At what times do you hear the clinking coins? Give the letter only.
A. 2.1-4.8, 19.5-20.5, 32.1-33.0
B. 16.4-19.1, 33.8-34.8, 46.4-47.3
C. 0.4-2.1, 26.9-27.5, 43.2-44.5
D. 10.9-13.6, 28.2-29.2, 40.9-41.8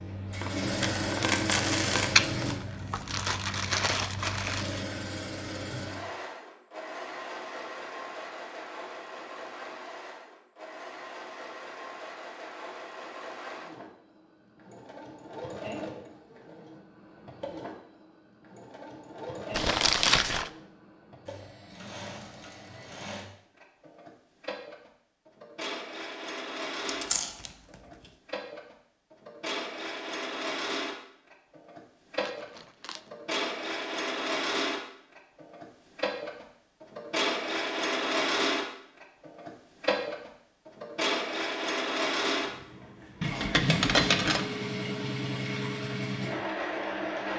C.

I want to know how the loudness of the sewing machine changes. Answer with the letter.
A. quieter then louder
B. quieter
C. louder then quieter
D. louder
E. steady
A.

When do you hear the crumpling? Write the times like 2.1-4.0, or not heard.
2.1-4.8, 19.5-20.5, 32.1-33.0.